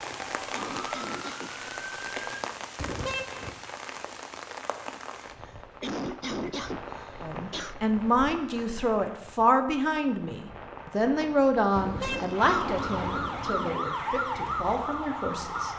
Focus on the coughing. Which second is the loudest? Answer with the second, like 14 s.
6 s.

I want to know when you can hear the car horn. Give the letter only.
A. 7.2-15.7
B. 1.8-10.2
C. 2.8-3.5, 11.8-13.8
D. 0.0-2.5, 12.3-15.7
C.